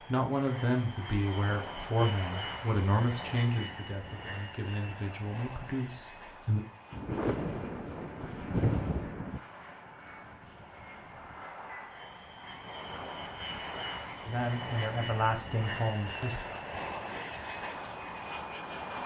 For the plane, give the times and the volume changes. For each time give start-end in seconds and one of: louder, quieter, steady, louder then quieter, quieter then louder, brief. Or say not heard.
0.0-19.0 quieter then louder.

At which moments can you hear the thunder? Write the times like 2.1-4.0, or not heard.
6.9-9.4.